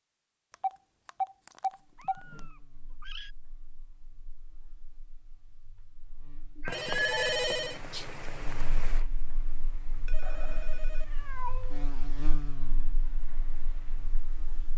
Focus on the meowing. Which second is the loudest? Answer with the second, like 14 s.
7 s.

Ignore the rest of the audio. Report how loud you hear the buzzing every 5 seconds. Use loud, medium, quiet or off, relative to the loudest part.
quiet, medium, loud.